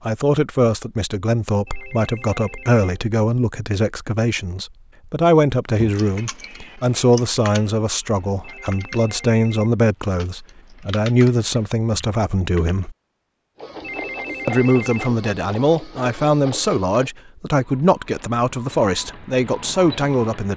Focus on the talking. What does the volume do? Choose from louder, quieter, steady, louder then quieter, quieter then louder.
steady.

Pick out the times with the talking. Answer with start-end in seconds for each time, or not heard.
0.1-12.9, 14.4-20.5.